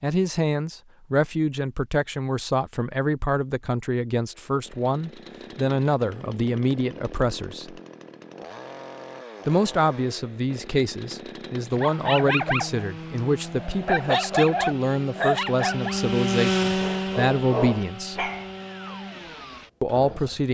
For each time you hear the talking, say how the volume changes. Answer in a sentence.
You can hear the talking from 0.0 to 7.8 s, at a steady volume; from 9.4 to 18.3 s, at a steady volume; and briefly from 19.8 to 20.4 s.